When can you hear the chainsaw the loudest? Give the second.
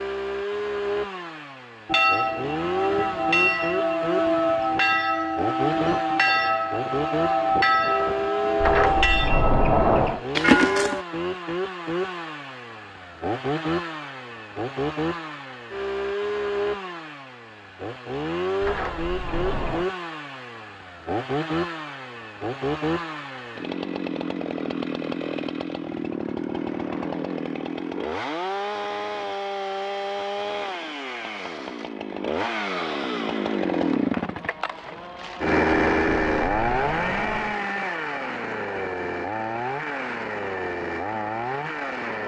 36 s.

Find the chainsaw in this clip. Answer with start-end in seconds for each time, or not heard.
0.0-42.2.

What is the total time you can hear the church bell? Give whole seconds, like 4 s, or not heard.
9 s.